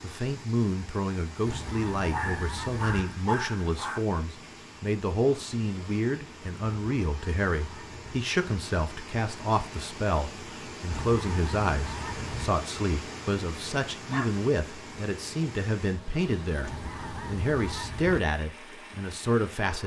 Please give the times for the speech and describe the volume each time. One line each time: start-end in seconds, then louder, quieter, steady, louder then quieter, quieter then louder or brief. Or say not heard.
0.0-19.8 steady.